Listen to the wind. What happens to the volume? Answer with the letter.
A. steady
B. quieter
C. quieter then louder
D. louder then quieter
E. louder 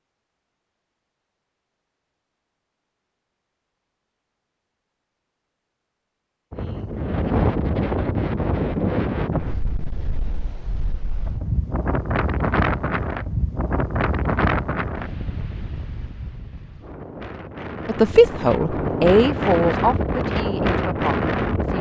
C.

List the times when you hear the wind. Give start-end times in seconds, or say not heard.
6.5-21.7.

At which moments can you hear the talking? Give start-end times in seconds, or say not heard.
17.9-21.7.